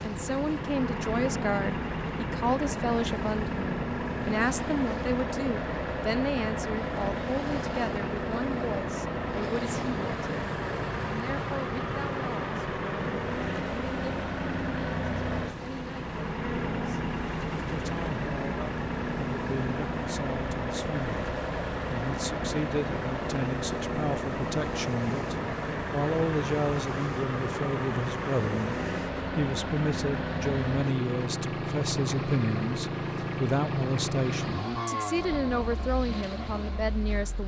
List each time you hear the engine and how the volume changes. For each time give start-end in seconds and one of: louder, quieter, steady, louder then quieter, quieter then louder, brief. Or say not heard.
0.0-37.4 steady.